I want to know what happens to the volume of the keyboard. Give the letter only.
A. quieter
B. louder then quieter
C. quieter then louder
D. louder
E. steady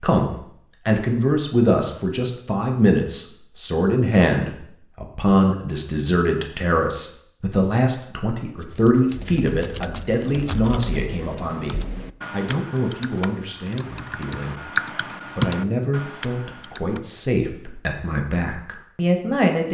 D.